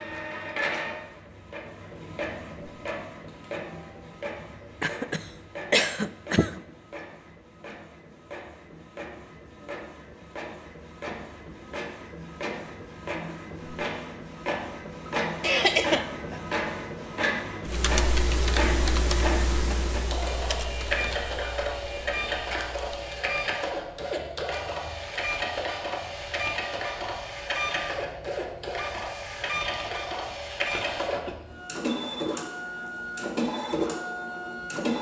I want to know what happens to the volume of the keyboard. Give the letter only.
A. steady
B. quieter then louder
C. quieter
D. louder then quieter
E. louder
C.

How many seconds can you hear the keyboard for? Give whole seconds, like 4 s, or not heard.
6 s.